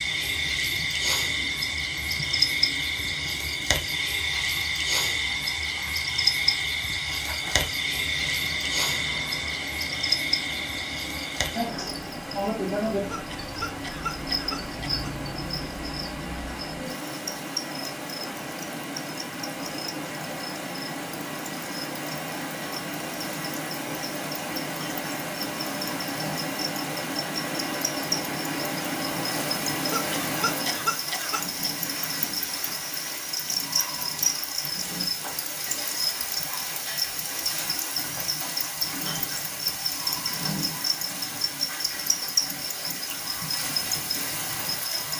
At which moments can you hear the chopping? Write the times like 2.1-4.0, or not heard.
not heard.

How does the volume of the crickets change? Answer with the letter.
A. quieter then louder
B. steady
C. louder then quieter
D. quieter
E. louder
A.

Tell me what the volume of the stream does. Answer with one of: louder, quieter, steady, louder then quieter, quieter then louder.
louder.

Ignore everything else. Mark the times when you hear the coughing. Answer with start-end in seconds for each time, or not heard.
12.9-15.1, 29.8-31.4.